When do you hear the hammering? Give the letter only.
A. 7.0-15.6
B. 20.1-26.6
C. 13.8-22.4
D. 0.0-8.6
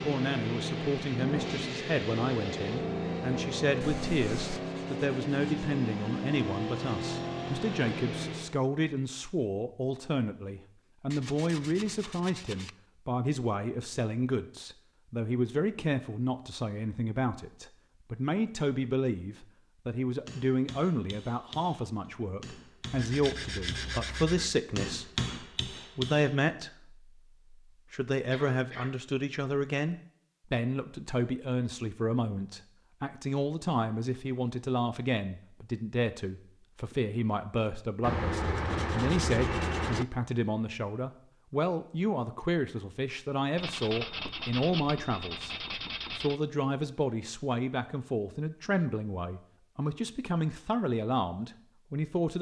B.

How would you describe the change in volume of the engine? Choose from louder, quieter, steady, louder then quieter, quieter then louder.
steady.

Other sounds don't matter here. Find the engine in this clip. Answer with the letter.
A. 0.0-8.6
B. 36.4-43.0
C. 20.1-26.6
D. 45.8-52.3
A.